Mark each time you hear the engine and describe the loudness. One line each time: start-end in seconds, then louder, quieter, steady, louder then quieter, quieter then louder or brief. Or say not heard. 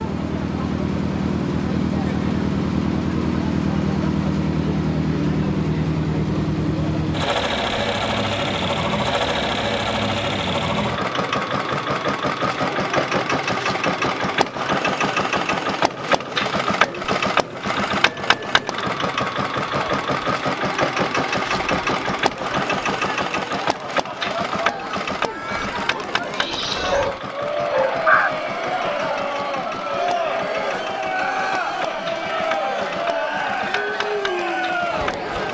0.0-35.4 quieter.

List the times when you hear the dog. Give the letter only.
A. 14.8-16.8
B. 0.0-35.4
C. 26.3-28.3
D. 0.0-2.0
C.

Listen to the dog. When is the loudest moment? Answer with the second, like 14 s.
28 s.